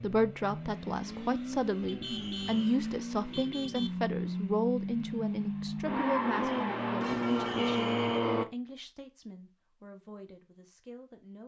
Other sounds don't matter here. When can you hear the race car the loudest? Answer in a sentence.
The loudest moment of the race car is at 8 seconds.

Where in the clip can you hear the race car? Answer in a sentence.
You can hear the race car from 0.0 to 8.4 s.